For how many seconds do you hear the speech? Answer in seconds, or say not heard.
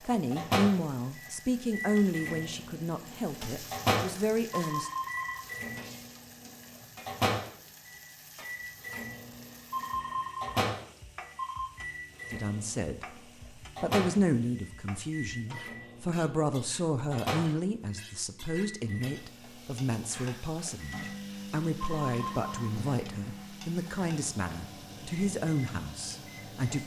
19 s.